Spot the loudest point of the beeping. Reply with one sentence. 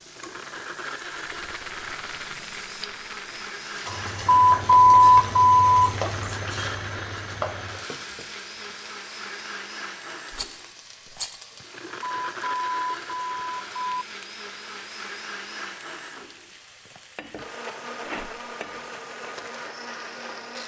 The loudest moment of the beeping is at 5 seconds.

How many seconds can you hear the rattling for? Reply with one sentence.
The rattling can be heard for 4 seconds in total.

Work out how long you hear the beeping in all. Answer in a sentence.
The beeping can be heard for 4 seconds in total.